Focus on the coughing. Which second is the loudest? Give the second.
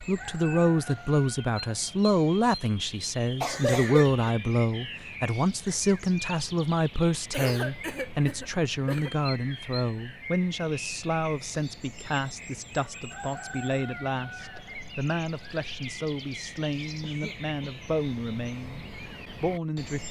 4 s.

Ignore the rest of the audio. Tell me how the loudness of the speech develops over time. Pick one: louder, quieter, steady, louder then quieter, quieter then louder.
quieter.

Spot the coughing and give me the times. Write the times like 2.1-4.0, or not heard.
3.4-4.3, 7.3-9.2, 17.0-17.8.